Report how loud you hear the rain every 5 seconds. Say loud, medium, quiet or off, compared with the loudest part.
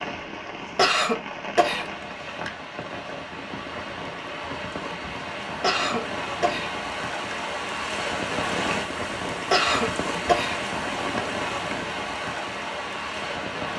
medium, loud, loud.